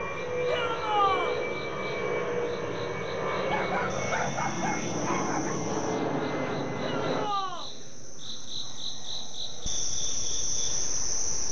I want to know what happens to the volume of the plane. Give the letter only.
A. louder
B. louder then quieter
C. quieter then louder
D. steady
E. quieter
E.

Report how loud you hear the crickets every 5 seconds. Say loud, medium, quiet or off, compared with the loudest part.
quiet, medium, loud.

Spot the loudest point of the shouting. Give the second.
1 s.